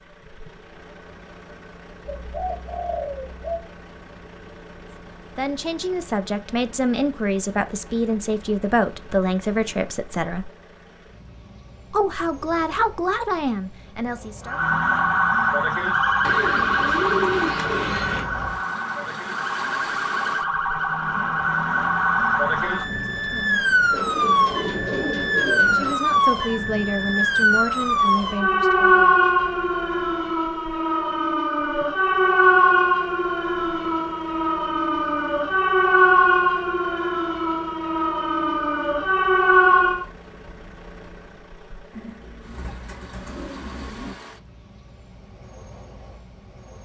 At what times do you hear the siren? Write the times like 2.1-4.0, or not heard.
14.4-40.0.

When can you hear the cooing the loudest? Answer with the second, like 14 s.
17 s.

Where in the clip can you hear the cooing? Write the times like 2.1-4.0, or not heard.
2.0-3.6, 16.2-18.2, 23.9-25.9, 41.9-44.2.